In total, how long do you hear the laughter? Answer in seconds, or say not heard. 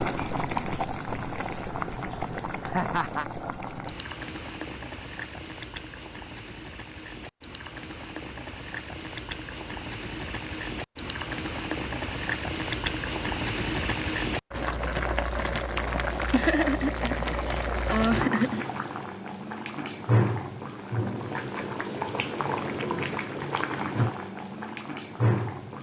3 s.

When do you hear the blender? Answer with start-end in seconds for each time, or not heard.
not heard.